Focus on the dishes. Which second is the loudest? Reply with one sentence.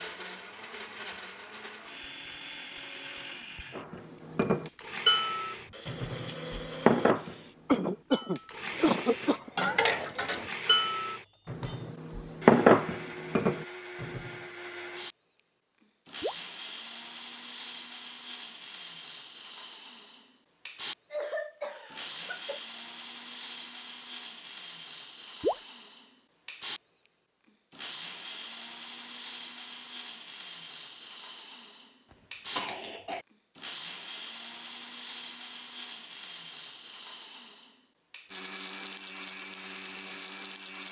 The volume of the dishes peaks at 13 seconds.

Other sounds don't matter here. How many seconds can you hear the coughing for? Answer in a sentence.
You can hear the coughing for 4 seconds altogether.